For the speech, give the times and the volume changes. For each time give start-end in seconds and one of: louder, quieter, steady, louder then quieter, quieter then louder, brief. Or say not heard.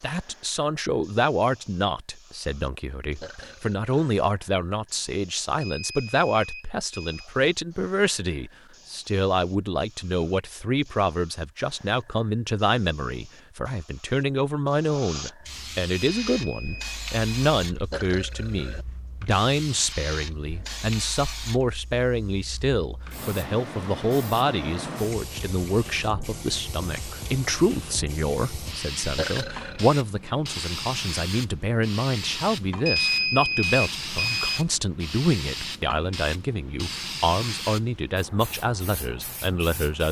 0.0-40.0 steady.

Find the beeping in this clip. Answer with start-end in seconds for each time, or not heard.
5.6-7.3, 15.9-17.4, 32.9-34.6.